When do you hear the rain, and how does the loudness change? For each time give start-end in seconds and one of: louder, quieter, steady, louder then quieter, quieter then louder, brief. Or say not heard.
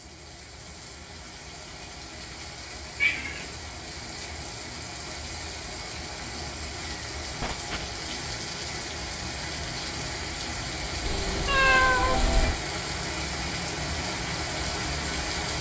0.0-15.5 louder.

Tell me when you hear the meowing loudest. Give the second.
12 s.